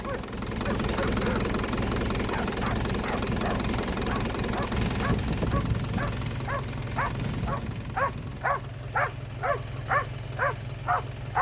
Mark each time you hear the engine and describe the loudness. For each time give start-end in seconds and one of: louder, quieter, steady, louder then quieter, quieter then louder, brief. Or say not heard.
0.0-11.3 quieter.